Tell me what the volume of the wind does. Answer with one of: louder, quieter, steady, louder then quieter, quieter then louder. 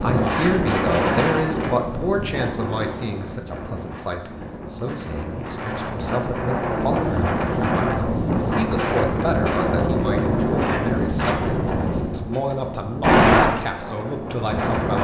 quieter then louder.